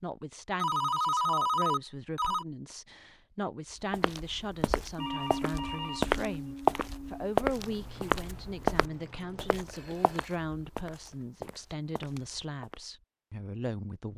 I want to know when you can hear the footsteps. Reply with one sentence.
You can hear the footsteps from 3.9 to 12.8 s.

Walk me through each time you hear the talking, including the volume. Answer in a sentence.
The talking can be heard from 0.0 to 14.1 s, at a steady volume.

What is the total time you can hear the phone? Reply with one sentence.
The phone can be heard for 5 seconds in total.